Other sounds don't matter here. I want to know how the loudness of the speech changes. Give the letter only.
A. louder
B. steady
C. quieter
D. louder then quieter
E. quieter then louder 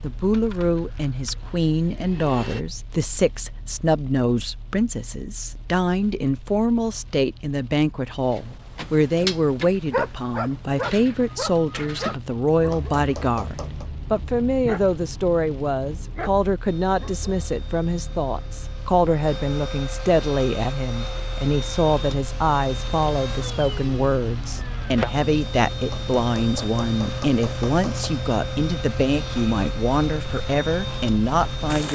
B.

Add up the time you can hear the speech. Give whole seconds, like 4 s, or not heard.
32 s.